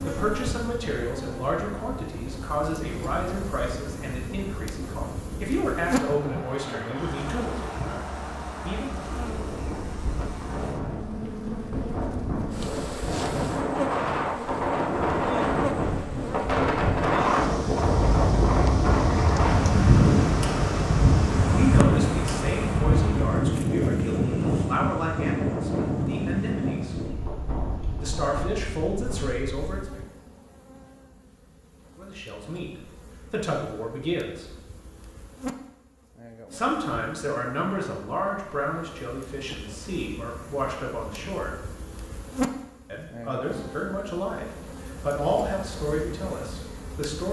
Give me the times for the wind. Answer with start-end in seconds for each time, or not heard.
0.0-29.8.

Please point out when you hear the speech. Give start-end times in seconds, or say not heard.
0.0-9.1, 21.4-26.9, 28.0-30.0, 31.9-34.5, 36.5-41.5, 42.9-47.2.